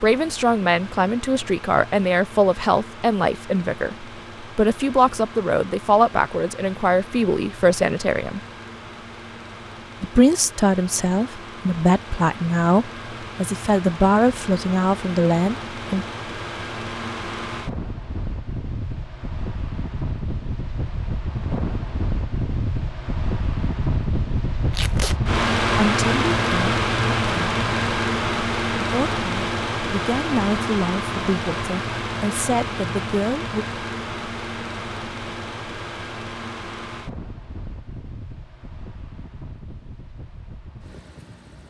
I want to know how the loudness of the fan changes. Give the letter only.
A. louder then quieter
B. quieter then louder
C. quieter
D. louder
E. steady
A.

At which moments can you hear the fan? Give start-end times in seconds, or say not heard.
0.0-41.6.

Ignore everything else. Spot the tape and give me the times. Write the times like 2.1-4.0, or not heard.
24.7-25.1.